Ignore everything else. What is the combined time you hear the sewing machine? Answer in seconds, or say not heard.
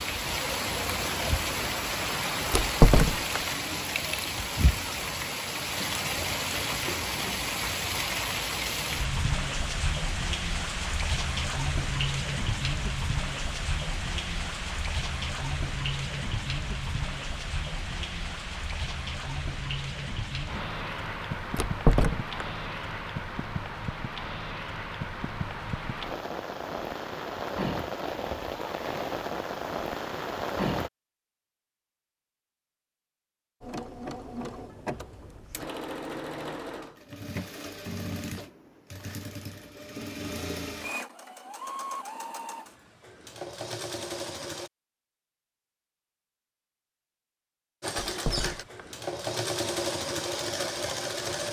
15 s.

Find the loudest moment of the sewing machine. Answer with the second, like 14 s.
50 s.